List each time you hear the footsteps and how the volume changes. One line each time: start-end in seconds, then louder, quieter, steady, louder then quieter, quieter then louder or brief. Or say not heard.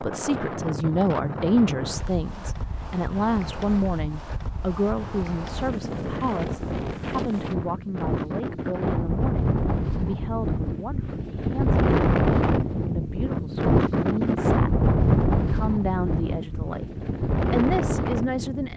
not heard.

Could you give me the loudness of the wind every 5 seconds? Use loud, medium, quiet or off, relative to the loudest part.
medium, medium, loud, loud.